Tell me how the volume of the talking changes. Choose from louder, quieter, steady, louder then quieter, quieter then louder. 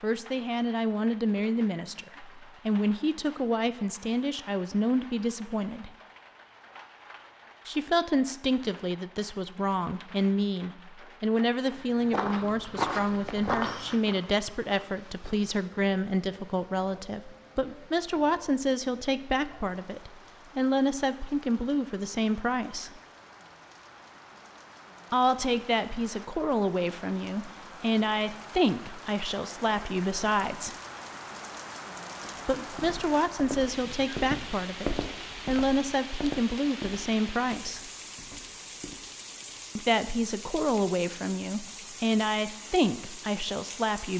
steady.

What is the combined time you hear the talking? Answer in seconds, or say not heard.
37 s.